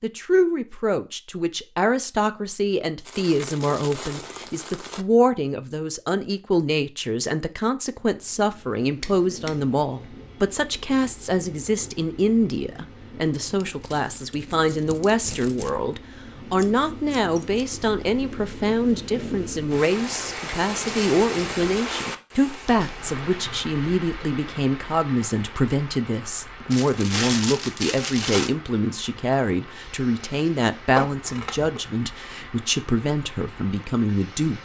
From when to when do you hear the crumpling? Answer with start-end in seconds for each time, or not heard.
3.0-5.0, 13.6-15.7, 26.7-28.6.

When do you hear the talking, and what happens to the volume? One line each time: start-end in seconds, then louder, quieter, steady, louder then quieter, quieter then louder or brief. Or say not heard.
0.0-34.6 steady.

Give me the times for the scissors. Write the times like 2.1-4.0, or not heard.
9.0-9.5, 16.6-17.6, 30.9-31.8.